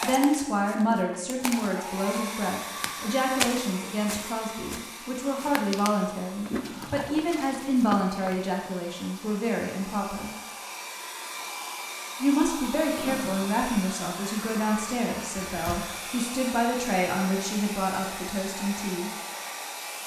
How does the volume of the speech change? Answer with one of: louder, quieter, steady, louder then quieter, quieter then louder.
steady.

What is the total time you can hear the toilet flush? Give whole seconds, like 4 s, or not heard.
2 s.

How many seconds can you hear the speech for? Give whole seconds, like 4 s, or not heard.
17 s.